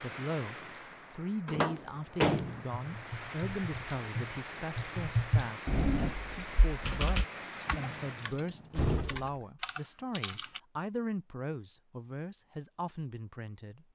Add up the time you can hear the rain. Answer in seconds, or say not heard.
8 s.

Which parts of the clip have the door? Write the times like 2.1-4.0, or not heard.
1.4-2.6, 8.2-9.4.